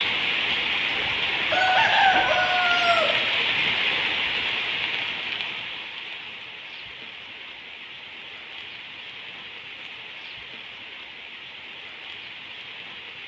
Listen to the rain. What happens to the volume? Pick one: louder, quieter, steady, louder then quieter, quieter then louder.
quieter.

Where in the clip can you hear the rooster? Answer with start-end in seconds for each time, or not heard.
1.5-3.1.